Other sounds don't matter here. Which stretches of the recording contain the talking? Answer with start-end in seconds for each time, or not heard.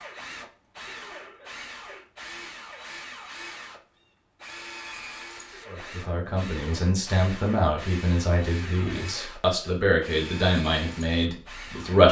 5.7-12.0.